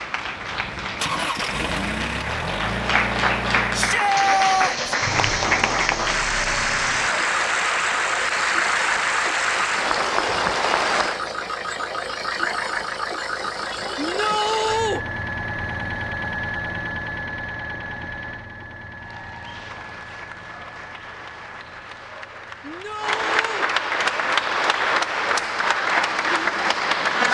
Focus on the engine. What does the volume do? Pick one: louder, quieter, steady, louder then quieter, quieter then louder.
quieter.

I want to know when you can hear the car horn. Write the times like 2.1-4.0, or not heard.
not heard.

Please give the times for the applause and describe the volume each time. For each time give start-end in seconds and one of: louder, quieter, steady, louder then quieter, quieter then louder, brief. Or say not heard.
0.0-11.2 louder
18.9-27.2 louder.